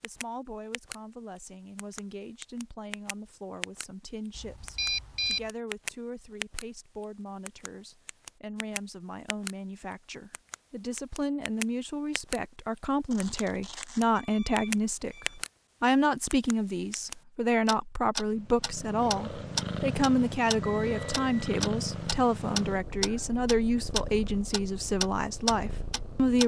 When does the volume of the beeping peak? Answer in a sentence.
The loudest moment of the beeping is at 5 seconds.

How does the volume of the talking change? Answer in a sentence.
The loudness of the talking goes up.